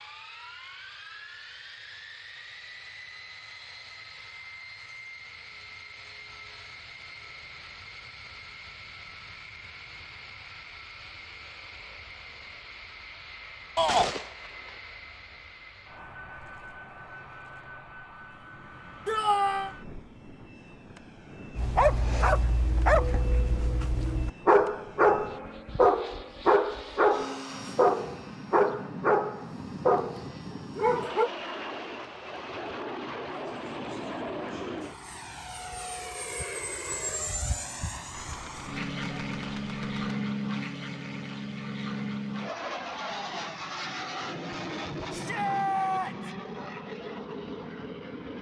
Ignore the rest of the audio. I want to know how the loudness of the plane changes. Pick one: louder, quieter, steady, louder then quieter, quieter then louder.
louder.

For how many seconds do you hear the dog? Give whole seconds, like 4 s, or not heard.
10 s.